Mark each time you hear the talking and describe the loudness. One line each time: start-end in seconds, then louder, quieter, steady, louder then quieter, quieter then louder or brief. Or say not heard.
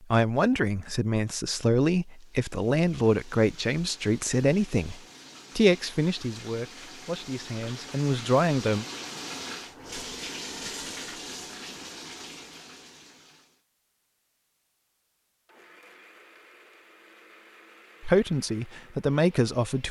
0.0-8.8 steady
18.0-19.8 brief.